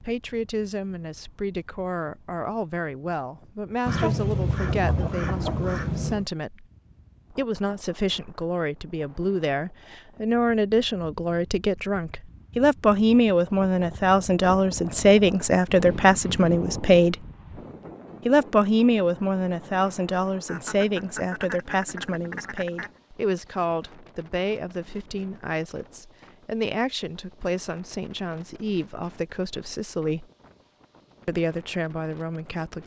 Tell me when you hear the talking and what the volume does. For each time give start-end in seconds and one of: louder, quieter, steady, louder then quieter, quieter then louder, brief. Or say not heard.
0.0-6.7 steady
7.3-17.1 louder
18.2-30.2 quieter
31.2-32.8 brief.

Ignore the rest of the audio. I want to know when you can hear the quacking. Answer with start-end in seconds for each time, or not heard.
3.9-6.2, 20.4-23.0.